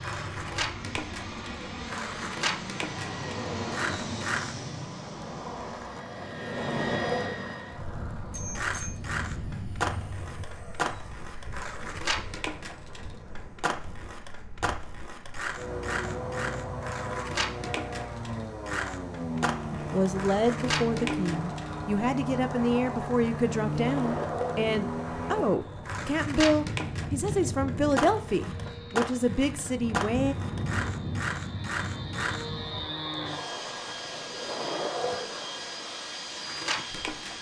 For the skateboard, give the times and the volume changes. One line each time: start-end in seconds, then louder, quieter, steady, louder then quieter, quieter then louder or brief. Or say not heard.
0.0-37.3 steady.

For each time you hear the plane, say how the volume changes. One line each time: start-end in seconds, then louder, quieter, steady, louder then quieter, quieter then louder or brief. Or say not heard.
0.0-37.3 quieter then louder.